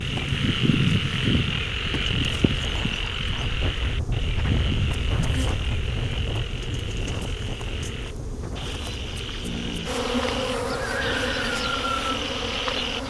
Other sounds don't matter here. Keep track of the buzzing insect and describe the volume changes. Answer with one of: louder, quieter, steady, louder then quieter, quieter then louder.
quieter then louder.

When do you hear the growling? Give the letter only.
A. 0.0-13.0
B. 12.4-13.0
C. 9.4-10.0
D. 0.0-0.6
C.